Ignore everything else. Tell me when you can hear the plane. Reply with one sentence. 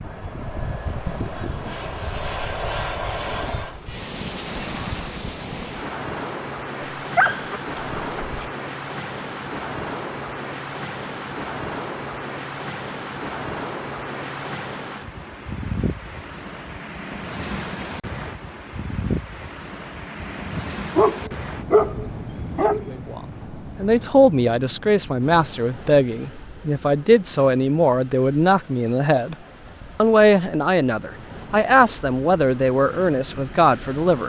The plane can be heard from 0.0 to 3.8 s.